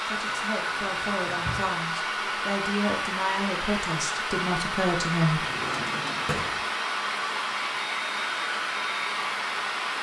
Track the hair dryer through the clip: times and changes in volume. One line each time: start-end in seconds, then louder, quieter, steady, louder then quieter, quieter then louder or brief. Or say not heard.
0.0-9.9 steady.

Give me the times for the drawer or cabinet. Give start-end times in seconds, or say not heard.
0.1-1.8, 5.2-6.7.